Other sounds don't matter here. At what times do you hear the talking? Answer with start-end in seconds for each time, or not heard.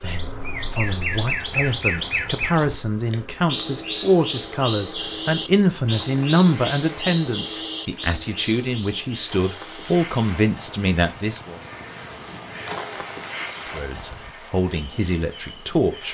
0.0-11.6, 13.7-16.0.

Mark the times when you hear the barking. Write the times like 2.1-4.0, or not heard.
not heard.